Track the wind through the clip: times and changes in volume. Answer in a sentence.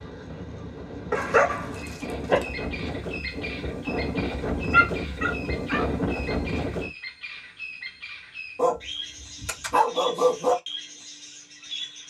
The wind can be heard from 0.0 to 6.9 s, getting louder.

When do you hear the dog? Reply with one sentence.
The dog can be heard from 1.1 to 2.5 s, from 4.7 to 5.8 s and from 8.6 to 10.6 s.